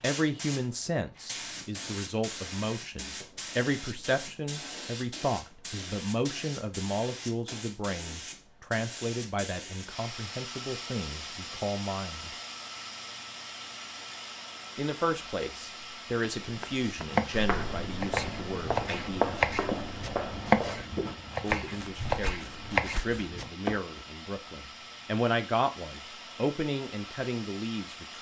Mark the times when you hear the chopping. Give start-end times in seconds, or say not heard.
16.9-24.1.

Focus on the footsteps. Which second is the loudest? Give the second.
19 s.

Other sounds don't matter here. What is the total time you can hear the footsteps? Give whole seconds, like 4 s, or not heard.
7 s.